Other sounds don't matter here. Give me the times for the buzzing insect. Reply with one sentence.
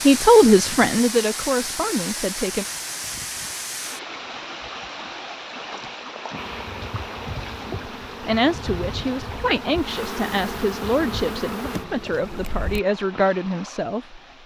You can hear the buzzing insect from 6.3 to 12.8 s.